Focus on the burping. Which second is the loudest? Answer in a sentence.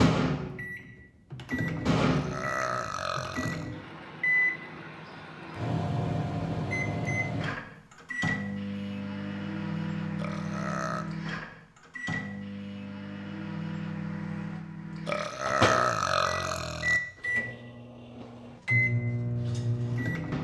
The loudest moment of the burping is at 16 seconds.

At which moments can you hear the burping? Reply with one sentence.
The burping can be heard from 1.9 to 3.7 s, from 10.2 to 11.1 s and from 15.1 to 17.0 s.